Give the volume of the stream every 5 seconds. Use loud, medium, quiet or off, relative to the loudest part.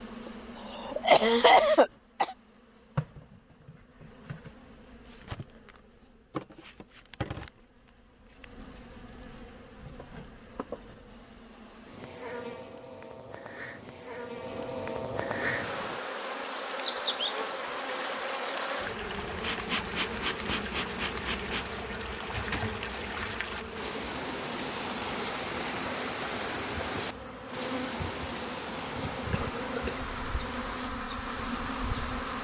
off, off, off, medium, loud, loud, medium.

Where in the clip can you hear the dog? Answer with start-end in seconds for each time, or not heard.
not heard.